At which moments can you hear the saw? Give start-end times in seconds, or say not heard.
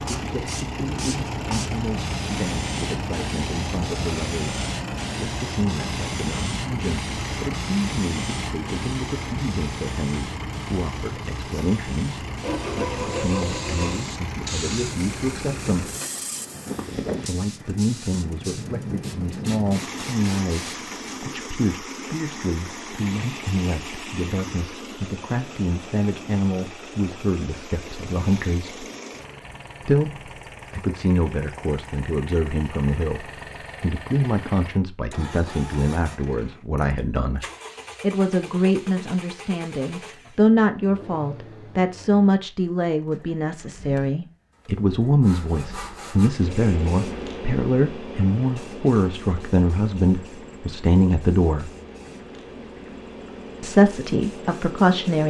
12.4-14.0, 45.2-46.3.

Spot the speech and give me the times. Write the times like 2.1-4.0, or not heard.
0.1-15.9, 17.2-28.9, 29.8-51.7, 53.6-55.2.